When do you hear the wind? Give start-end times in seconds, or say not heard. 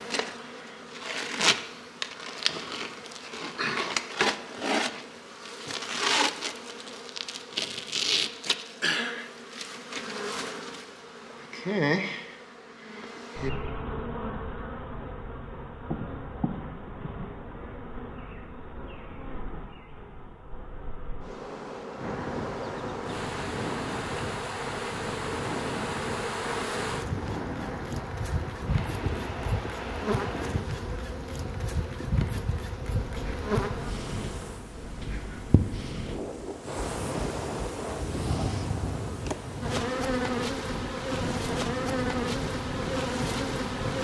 21.9-43.9.